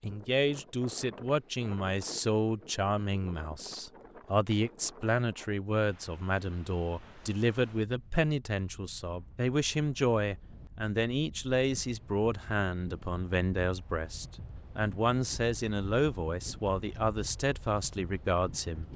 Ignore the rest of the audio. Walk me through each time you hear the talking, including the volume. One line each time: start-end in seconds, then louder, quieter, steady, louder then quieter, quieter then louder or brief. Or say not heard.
0.0-18.9 steady.